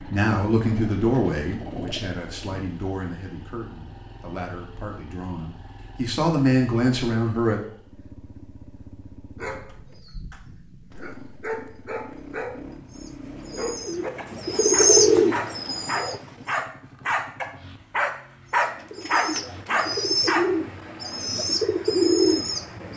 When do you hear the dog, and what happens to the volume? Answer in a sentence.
The dog can be heard from 9.3 to 20.4 s, getting louder.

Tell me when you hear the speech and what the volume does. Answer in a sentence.
The speech can be heard from 0.0 to 7.6 s, getting quieter then louder.